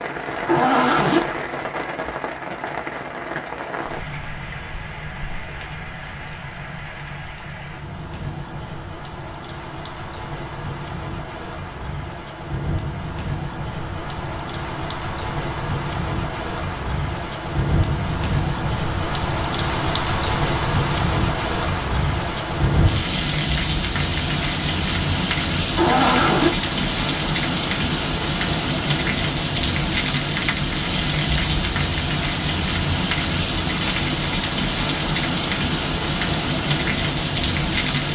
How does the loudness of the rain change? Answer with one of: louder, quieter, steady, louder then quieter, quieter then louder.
louder.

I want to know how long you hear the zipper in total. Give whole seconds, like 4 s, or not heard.
2 s.